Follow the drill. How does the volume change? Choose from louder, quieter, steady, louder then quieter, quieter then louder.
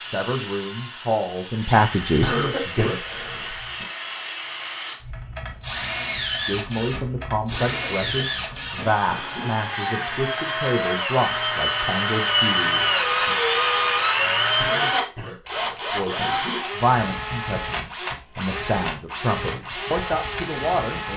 louder then quieter.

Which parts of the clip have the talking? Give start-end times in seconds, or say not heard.
0.1-3.0, 6.5-13.3, 15.9-21.1.